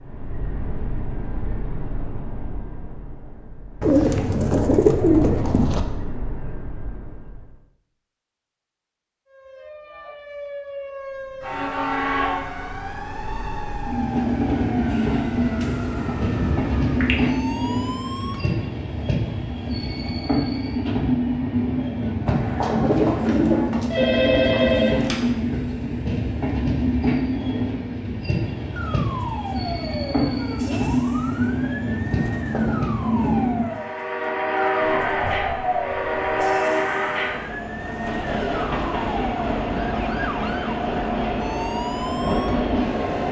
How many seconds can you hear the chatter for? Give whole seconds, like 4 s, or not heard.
not heard.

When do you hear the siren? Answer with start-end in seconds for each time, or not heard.
9.3-18.7, 28.6-43.2.